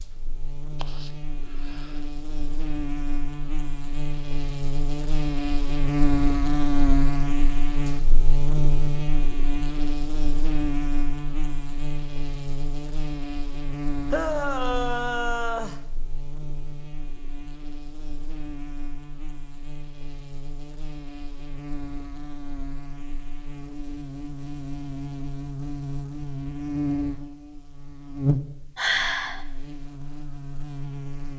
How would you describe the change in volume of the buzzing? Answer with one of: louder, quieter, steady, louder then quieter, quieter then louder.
quieter then louder.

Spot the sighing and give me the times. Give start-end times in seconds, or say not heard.
0.8-2.0, 14.1-15.8, 28.8-29.4.